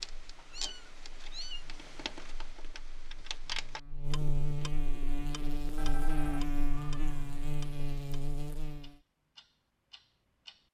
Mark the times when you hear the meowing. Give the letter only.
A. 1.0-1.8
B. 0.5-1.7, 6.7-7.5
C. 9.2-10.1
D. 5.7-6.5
B.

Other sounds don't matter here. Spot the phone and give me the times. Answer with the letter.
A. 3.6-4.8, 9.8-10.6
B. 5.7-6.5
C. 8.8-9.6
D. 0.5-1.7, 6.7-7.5
B.